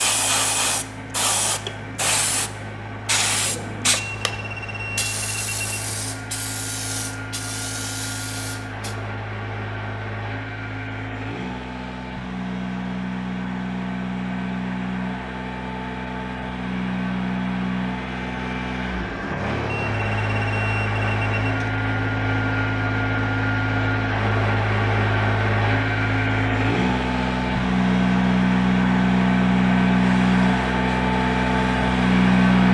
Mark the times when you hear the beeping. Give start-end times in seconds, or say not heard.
4.0-6.0, 19.6-21.7.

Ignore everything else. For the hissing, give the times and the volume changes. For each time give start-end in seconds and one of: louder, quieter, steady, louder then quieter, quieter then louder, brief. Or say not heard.
0.0-8.9 quieter
30.0-32.4 brief.